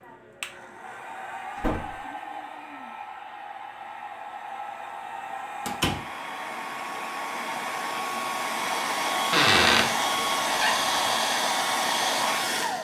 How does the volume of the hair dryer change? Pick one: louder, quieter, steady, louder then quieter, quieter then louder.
louder.